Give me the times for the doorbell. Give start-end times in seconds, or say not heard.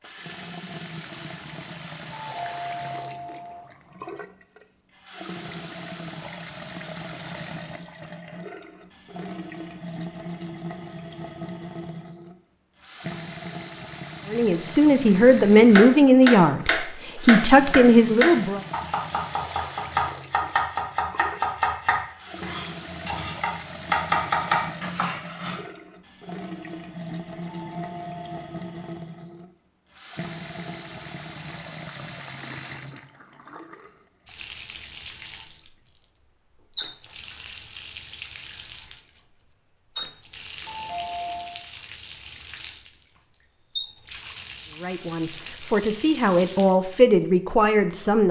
2.1-3.6, 27.5-28.4, 40.6-41.6.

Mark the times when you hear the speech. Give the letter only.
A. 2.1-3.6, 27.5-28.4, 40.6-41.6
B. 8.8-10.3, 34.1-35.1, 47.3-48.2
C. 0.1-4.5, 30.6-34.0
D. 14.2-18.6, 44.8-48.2
D.